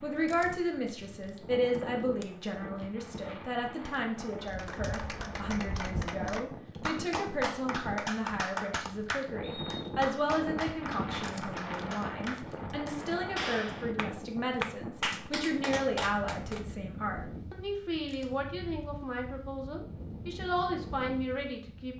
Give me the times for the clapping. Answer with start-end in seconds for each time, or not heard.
4.4-16.6.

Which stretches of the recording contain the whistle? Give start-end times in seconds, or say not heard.
9.4-9.9.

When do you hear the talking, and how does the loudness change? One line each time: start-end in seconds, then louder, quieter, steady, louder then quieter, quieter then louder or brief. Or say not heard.
0.0-21.9 steady.